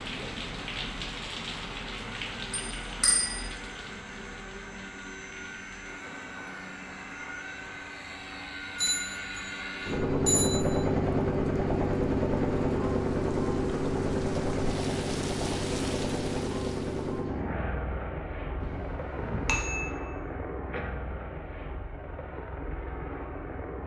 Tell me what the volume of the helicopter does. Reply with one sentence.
The loudness of the helicopter goes up, then down.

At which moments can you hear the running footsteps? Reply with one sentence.
You can't hear the running footsteps here.